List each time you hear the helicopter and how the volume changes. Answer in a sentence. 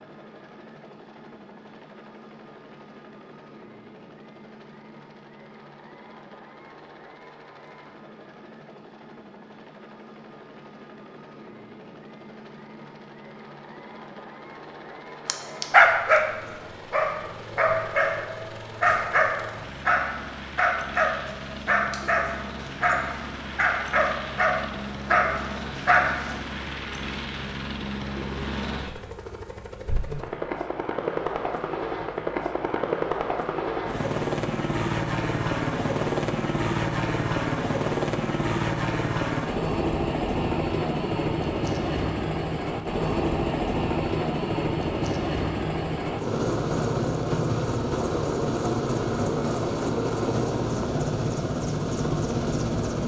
The helicopter can be heard from 0.0 to 53.0 s, getting louder.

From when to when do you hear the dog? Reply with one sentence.
You can hear the dog from 15.2 to 26.4 s.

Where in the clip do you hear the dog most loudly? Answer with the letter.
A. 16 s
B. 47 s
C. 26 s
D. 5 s
A.